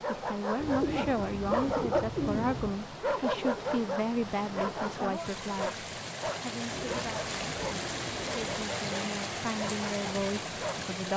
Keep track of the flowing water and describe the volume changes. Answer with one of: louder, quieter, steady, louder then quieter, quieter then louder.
louder.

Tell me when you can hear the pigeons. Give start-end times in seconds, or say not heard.
0.6-2.9, 6.7-8.5.